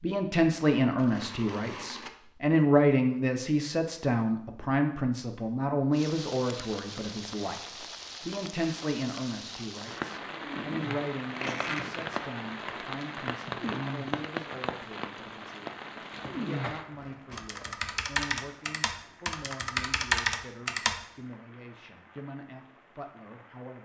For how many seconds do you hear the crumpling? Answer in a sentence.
You can hear the crumpling for 5 seconds altogether.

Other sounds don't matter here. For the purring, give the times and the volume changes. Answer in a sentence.
The purring can't be heard in this clip.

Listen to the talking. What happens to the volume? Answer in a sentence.
The volume of the talking goes down.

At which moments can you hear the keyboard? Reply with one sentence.
You can hear the keyboard from 17.3 to 20.9 s.